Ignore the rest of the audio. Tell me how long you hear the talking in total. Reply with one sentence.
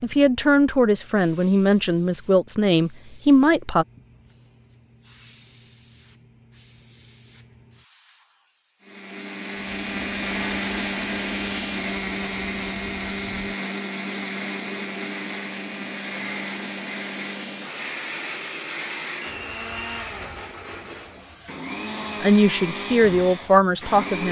The talking can be heard for 6 seconds in total.